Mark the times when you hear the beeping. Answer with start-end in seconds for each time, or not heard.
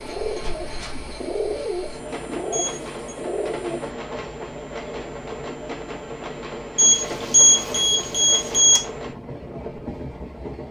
2.5-3.1, 6.8-8.8.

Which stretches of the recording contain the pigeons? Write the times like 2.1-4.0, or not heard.
0.0-3.9.